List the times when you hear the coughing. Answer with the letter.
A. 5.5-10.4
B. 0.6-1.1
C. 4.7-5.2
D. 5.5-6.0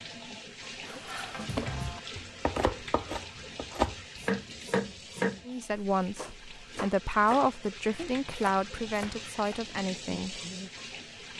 B.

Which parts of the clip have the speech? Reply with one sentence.
You can hear the speech from 5.5 to 10.4 s.